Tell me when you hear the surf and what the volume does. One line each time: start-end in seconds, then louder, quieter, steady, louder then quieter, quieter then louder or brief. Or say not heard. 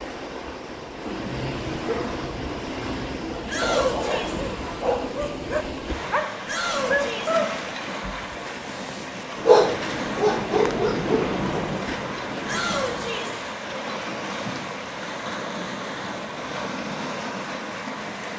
0.0-18.3 steady.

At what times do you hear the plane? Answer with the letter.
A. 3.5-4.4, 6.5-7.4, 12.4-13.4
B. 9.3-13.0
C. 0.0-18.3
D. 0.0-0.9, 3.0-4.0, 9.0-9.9
B.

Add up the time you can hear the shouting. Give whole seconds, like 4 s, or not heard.
3 s.